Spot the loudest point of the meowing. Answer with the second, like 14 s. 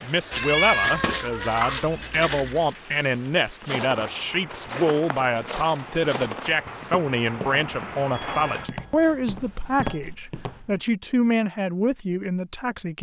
1 s.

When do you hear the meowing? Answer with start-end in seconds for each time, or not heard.
0.3-2.8.